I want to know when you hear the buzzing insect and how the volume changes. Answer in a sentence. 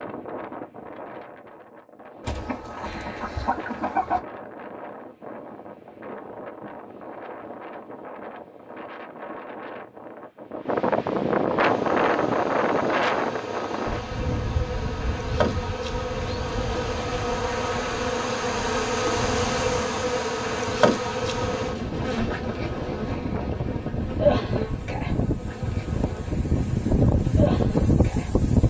The buzzing insect can be heard from 11.6 to 28.6 s, getting louder then quieter.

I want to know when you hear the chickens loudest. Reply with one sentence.
The volume of the chickens peaks at 4 seconds.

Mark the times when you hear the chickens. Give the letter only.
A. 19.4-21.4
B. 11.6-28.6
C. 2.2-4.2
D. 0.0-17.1
C.